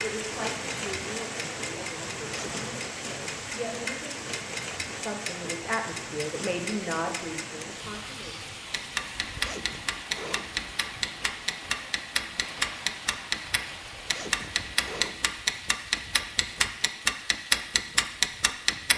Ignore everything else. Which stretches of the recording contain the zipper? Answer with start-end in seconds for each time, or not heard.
2.1-2.7, 9.2-10.7, 13.9-15.4.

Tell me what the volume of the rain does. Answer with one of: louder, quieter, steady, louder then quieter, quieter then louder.
quieter.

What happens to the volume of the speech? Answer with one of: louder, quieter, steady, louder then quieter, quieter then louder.
quieter then louder.